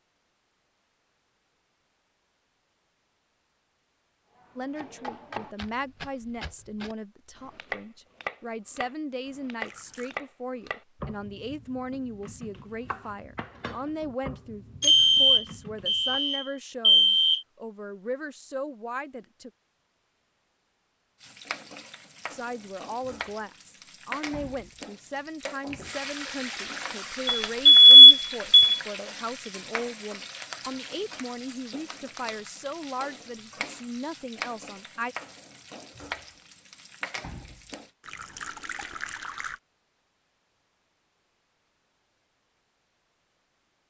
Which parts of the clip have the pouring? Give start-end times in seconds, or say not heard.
9.6-10.2, 25.8-27.2, 38.0-39.6.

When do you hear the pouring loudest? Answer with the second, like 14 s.
39 s.